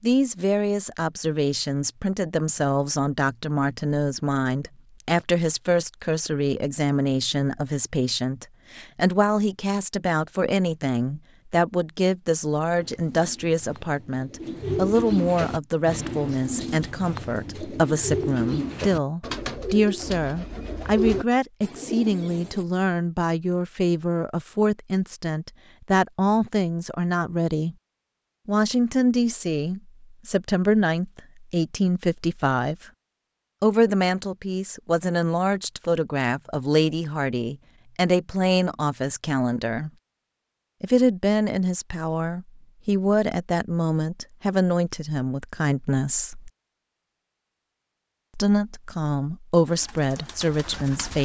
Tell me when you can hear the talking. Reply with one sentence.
You can hear the talking from 0.0 to 27.8 s, from 28.4 to 32.8 s, from 33.6 to 39.9 s, from 40.8 to 46.5 s and from 48.4 to 51.2 s.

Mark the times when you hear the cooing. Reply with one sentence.
You can hear the cooing from 12.8 to 22.6 s and from 49.6 to 51.2 s.